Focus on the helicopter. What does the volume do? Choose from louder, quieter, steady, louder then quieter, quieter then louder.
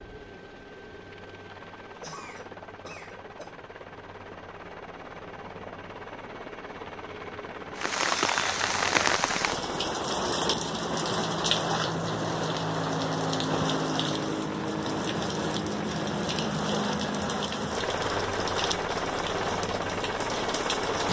louder.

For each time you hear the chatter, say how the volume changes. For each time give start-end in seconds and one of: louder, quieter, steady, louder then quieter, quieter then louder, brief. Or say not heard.
not heard.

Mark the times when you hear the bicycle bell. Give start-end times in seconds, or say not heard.
not heard.